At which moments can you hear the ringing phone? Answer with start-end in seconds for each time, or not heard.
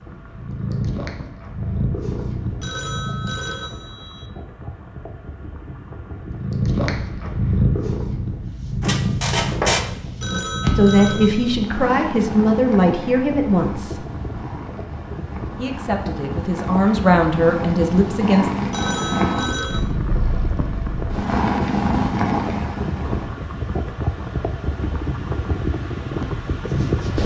2.6-4.3, 10.2-11.7, 18.7-19.9.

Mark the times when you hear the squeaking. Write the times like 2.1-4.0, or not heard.
8.8-9.8.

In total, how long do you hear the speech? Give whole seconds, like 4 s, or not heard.
6 s.